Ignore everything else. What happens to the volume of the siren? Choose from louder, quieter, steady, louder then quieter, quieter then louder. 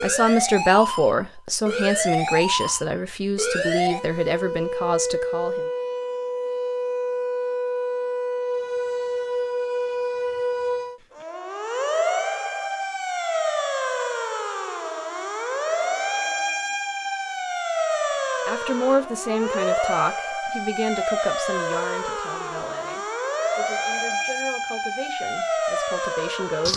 steady.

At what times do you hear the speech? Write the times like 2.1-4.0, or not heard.
0.0-5.7, 18.4-26.7.